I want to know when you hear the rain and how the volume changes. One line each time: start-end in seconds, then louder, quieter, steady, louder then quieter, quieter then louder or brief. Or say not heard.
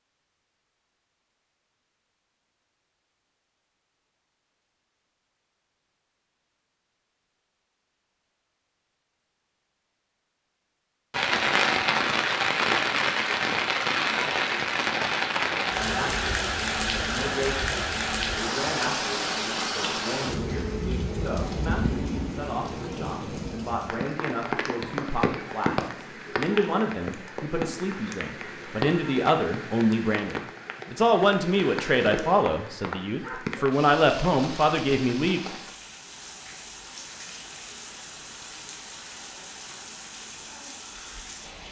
11.1-41.6 quieter.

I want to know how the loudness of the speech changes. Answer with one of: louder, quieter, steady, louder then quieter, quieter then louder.
louder.